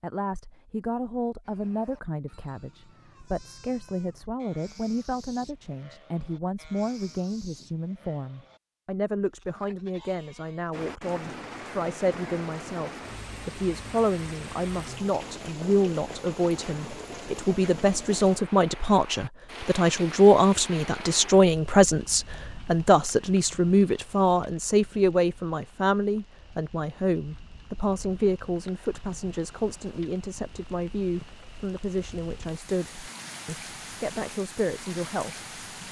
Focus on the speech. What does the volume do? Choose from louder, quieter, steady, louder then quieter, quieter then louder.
louder then quieter.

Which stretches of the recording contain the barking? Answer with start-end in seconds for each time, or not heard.
not heard.